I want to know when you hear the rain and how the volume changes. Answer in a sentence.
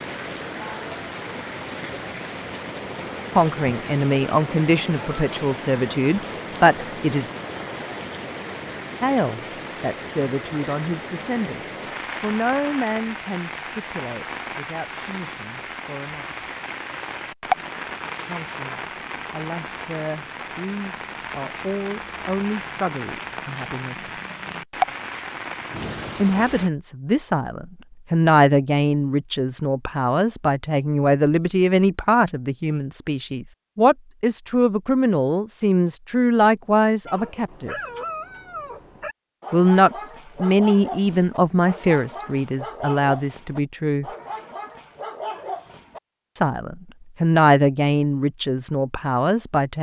You can hear the rain from 0.0 to 26.7 s, at a steady volume.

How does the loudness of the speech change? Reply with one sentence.
The loudness of the speech goes down, then up.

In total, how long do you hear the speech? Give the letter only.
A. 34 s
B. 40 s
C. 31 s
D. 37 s
D.